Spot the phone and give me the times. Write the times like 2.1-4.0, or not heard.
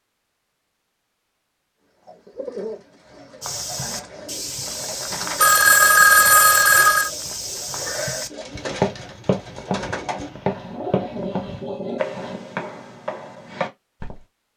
5.4-7.1.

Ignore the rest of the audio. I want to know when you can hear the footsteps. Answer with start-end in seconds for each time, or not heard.
3.4-14.2.